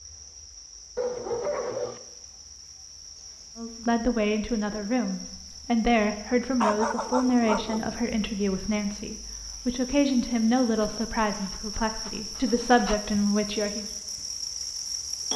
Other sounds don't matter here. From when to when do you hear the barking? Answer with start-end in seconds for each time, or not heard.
0.9-2.0, 6.6-8.0, 10.8-13.0.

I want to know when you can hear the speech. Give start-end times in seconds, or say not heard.
3.5-13.8.